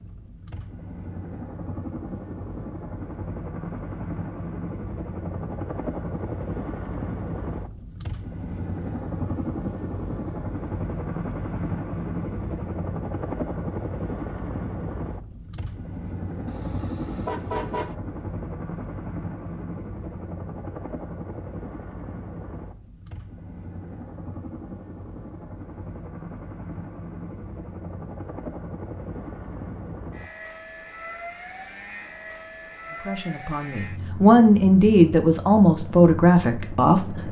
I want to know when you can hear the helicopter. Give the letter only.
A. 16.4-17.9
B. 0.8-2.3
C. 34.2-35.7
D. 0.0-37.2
D.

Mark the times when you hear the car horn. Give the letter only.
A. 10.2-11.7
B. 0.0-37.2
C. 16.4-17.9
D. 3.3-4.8
C.